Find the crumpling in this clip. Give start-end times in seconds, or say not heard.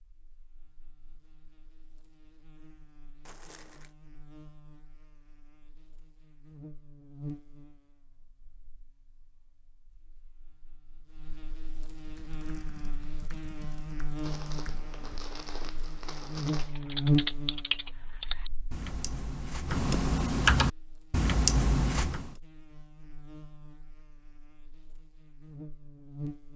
3.2-4.0, 14.2-16.8.